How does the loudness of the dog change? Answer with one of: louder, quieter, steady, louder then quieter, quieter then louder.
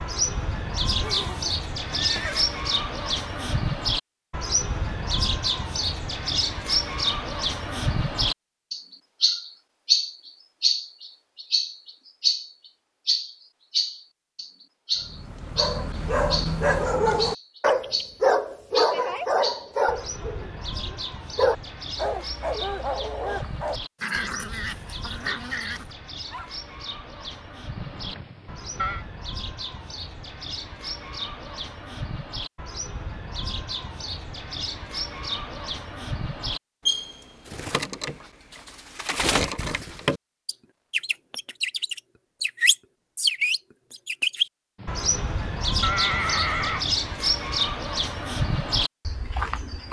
quieter.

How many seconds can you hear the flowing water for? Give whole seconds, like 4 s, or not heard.
not heard.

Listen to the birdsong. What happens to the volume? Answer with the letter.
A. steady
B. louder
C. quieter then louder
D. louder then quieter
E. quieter
C.